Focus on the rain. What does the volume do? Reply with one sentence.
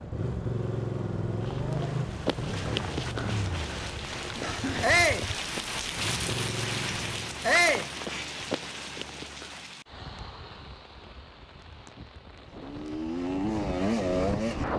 The volume of the rain goes up, then down.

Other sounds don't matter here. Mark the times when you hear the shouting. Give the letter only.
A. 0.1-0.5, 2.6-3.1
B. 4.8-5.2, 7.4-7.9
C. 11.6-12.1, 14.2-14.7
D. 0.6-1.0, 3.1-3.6
B.